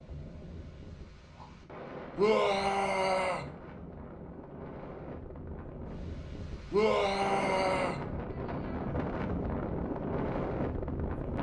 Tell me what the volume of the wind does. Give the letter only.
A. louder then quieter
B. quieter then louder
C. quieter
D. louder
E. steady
D.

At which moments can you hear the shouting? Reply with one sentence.
The shouting can be heard from 2.1 to 3.5 s and from 6.7 to 8.0 s.